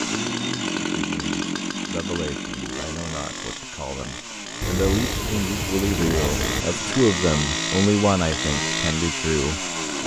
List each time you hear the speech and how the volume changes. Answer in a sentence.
You can hear the speech from 0.0 to 10.0 s, getting louder.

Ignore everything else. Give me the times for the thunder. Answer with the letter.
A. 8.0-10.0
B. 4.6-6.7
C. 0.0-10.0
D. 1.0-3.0
B.